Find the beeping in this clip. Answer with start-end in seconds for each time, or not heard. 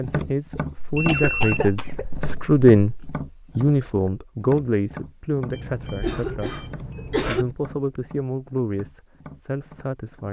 0.9-1.8, 5.5-7.5.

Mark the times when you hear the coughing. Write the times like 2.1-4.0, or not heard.
0.8-3.1, 5.8-7.5.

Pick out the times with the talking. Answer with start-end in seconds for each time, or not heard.
0.0-3.0, 3.5-6.5, 7.2-10.2.